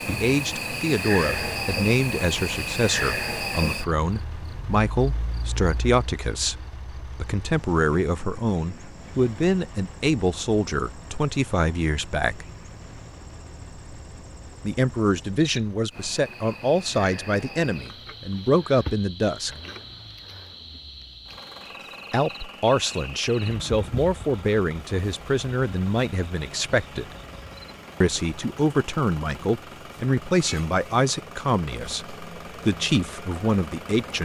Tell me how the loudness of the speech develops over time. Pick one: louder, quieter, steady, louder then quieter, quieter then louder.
steady.